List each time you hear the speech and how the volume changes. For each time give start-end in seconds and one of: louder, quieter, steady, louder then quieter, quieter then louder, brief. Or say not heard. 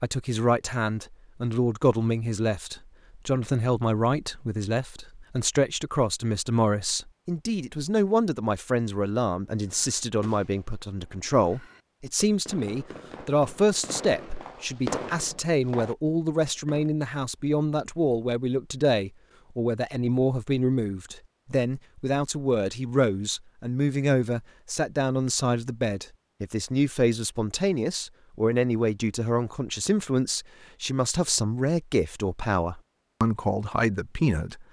0.0-34.6 steady.